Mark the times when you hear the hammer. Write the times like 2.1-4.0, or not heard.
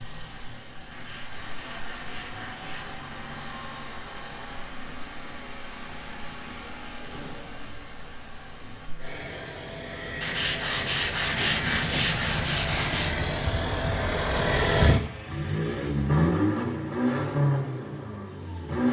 not heard.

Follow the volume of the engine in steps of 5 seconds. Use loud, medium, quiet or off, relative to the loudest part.
quiet, quiet, loud, loud.